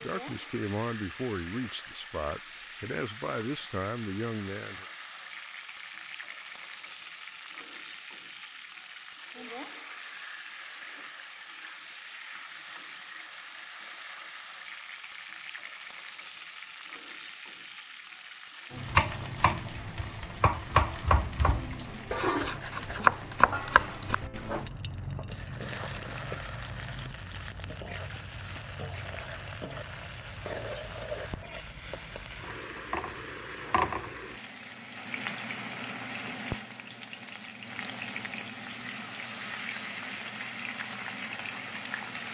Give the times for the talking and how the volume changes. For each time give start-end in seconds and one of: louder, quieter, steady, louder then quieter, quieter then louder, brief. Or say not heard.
0.0-4.8 steady.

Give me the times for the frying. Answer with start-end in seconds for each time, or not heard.
0.0-42.2.